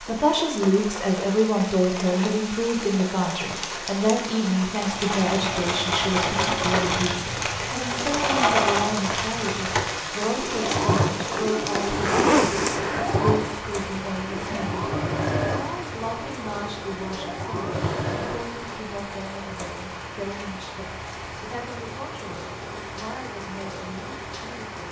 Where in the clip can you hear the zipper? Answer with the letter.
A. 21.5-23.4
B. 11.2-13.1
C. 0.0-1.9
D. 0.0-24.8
B.